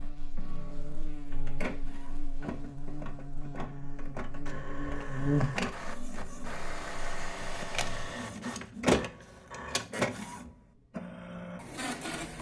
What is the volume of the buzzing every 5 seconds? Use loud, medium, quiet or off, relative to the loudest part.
medium, loud, off.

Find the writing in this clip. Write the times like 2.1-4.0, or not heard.
not heard.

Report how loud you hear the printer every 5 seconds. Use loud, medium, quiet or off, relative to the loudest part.
medium, loud, loud.